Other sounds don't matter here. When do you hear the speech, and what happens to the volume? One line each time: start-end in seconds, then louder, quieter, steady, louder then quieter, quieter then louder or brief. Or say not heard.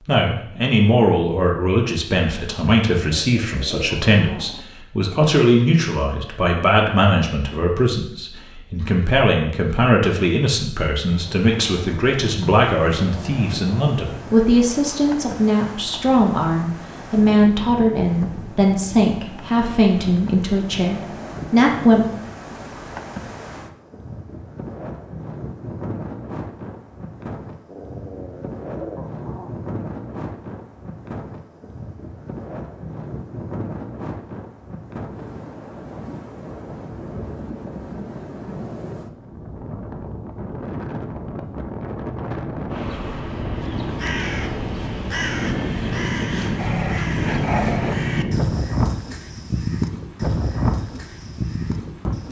0.1-22.1 steady.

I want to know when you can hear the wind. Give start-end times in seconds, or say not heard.
11.0-52.2.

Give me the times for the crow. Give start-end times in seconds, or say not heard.
42.7-52.2.